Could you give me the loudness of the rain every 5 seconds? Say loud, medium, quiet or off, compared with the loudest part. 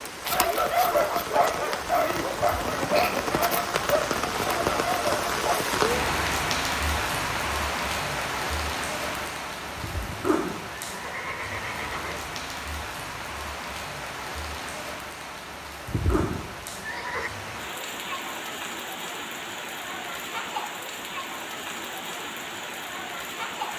loud, loud, medium, medium, medium.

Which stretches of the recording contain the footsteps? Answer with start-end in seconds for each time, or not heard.
not heard.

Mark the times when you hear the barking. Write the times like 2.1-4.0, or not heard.
0.2-5.7.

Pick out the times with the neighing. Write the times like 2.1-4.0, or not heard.
2.3-2.8, 9.8-12.3, 15.8-17.3.